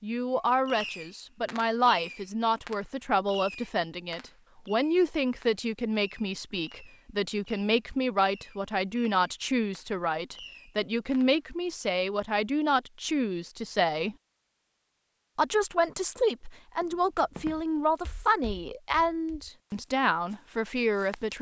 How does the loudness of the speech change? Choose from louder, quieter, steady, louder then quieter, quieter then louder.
steady.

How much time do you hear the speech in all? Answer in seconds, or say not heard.
20 s.